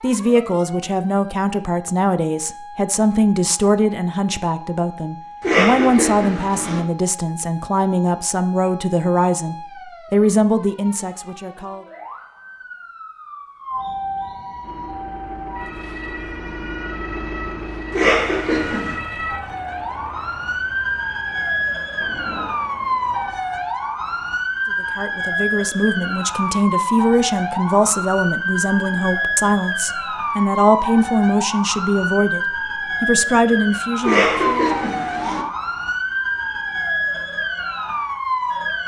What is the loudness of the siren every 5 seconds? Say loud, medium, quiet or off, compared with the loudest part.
quiet, quiet, medium, medium, loud, loud, loud, loud.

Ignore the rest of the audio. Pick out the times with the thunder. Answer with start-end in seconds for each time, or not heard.
21.9-22.5.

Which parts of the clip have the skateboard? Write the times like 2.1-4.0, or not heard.
not heard.